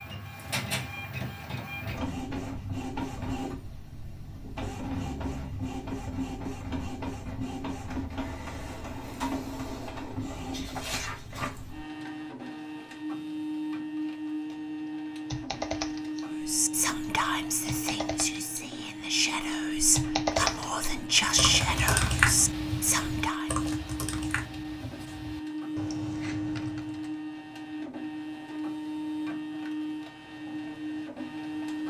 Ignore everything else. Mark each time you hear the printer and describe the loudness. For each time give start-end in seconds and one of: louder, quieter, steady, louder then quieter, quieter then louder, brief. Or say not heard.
0.0-31.8 steady.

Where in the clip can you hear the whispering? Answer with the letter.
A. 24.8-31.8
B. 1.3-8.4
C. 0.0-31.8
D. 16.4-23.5
D.